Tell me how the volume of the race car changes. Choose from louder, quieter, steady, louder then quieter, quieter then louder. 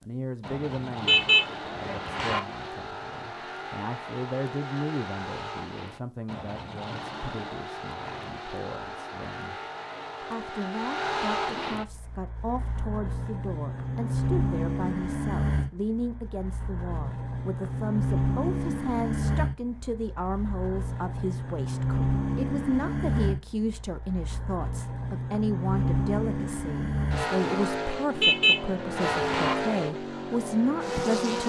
louder.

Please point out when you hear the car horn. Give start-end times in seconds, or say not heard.
1.0-2.4, 28.1-29.6.